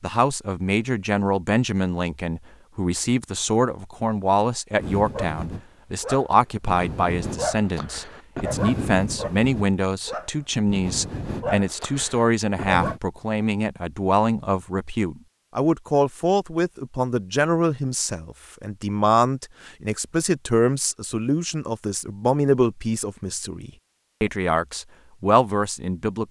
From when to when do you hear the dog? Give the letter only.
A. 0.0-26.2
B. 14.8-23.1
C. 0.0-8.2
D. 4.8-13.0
D.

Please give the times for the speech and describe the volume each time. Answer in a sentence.
The speech can be heard from 0.0 to 26.2 s, at a steady volume.